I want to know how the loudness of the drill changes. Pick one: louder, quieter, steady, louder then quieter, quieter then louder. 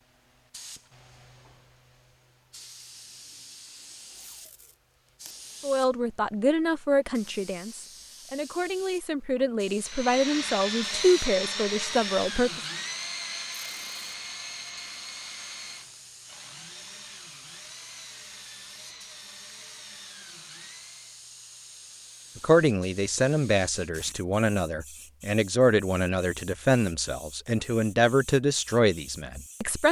quieter.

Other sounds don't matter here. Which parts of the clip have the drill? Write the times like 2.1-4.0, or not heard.
9.8-21.2.